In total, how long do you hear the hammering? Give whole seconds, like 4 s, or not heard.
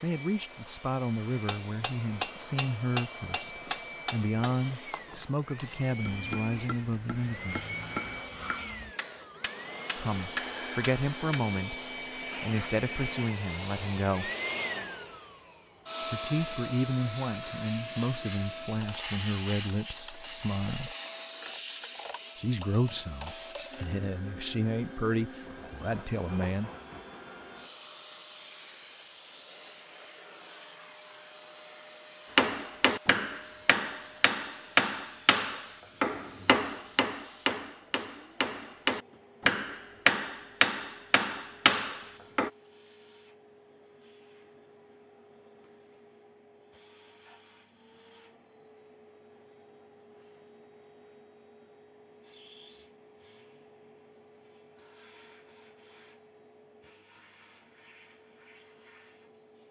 20 s.